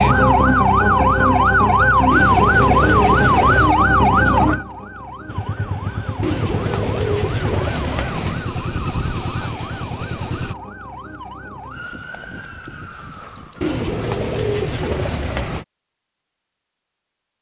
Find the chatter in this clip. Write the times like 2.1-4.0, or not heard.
not heard.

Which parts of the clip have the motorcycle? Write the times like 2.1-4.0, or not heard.
5.2-10.6.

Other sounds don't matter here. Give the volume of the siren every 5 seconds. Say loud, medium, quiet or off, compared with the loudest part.
loud, quiet, quiet, off.